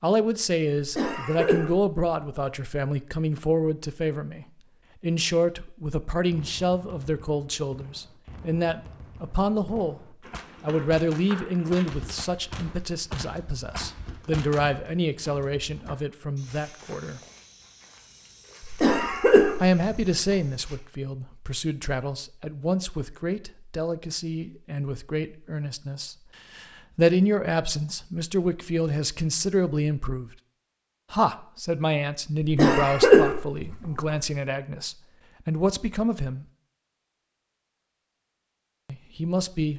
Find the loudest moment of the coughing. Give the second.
33 s.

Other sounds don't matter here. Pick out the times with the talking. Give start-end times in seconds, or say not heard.
0.0-17.2, 19.6-30.3, 31.1-36.5, 38.9-39.7.